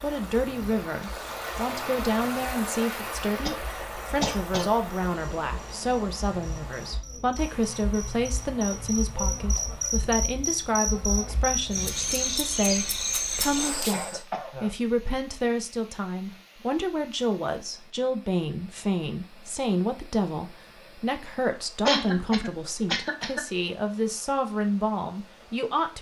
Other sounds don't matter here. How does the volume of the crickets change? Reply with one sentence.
The loudness of the crickets goes up.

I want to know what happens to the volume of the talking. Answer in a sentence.
The volume of the talking stays about the same.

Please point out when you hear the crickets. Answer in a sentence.
The crickets can be heard from 0.0 to 14.2 s.